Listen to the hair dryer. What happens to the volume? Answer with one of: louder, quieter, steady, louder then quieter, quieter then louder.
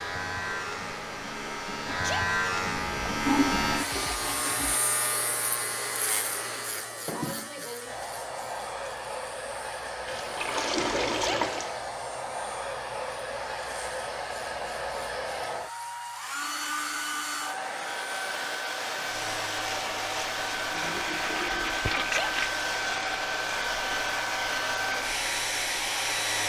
louder.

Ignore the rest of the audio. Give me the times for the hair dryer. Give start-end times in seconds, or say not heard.
0.0-26.4.